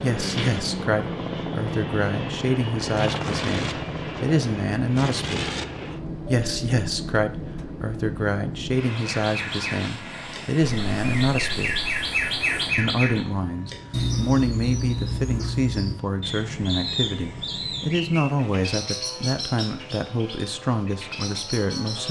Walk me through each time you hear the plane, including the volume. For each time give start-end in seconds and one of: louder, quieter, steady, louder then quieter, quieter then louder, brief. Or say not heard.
0.0-22.0 quieter.